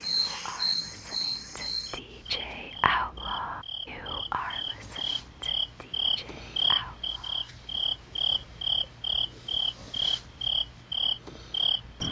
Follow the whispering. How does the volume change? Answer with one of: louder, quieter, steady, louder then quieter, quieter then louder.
louder then quieter.